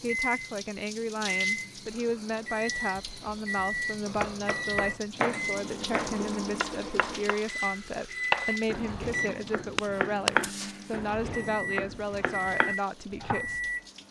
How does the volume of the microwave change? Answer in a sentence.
The volume of the microwave stays about the same.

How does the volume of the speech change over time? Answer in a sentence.
The volume of the speech stays about the same.